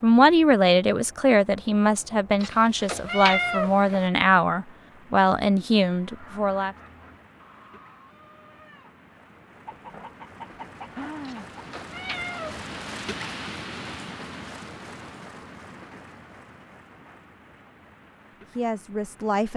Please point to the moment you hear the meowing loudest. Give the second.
3 s.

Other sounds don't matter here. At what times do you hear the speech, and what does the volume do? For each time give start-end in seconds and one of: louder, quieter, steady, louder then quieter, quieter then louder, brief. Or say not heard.
0.0-6.8 steady
18.5-19.5 brief.